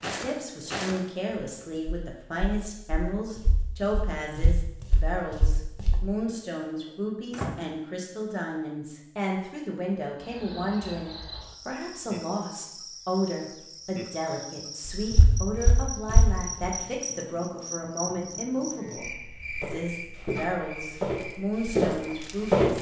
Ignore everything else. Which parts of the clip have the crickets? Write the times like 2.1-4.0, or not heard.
10.2-22.6.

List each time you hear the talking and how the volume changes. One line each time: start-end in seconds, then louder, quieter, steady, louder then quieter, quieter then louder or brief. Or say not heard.
0.1-22.7 steady.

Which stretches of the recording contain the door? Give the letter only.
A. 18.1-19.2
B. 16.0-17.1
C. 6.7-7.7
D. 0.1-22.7
C.